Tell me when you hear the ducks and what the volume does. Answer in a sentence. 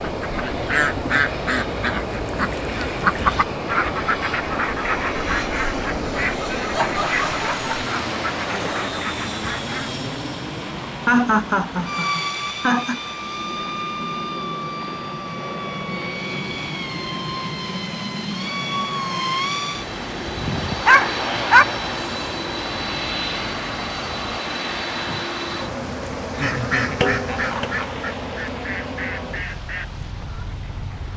The ducks can be heard from 0.0 to 9.9 s, getting quieter; and from 26.4 to 31.1 s, getting quieter.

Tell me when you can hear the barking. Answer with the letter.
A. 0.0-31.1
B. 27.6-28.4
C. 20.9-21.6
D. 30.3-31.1
C.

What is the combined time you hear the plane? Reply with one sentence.
You can hear the plane for 31 seconds altogether.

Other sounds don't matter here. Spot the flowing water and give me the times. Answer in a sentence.
The flowing water can be heard from 0.0 to 31.1 s.